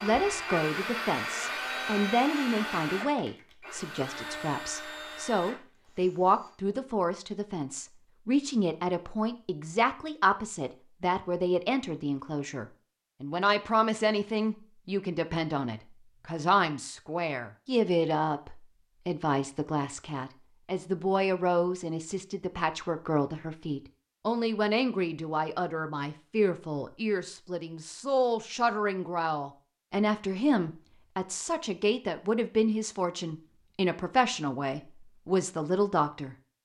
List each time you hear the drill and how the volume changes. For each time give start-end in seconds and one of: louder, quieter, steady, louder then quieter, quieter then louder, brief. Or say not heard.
0.0-6.5 quieter.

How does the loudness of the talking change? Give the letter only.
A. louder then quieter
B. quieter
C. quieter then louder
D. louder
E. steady
E.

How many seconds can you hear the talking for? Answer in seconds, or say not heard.
36 s.